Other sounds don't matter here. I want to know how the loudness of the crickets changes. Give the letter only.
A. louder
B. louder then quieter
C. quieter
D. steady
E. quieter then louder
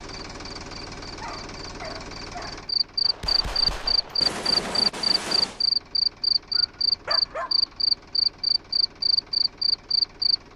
A.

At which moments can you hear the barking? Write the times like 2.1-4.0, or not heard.
1.2-2.7, 6.5-7.7.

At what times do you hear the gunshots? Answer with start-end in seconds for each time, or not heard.
3.0-5.7.